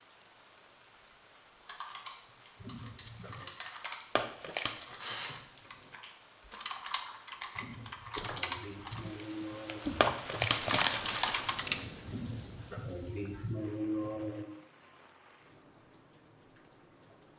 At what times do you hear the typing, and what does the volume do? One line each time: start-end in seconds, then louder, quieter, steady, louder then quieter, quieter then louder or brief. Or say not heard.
1.6-11.8 louder.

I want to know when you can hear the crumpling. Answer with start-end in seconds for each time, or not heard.
3.0-4.8, 8.9-11.6.